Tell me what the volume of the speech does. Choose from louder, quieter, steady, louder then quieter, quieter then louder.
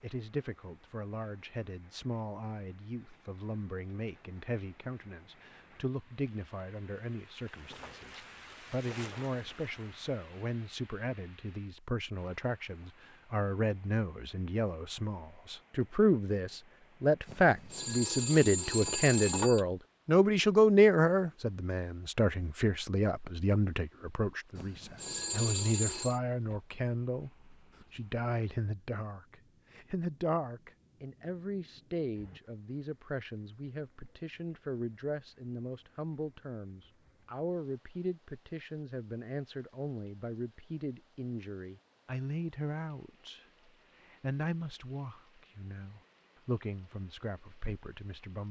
louder then quieter.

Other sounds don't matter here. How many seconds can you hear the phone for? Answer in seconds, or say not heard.
4 s.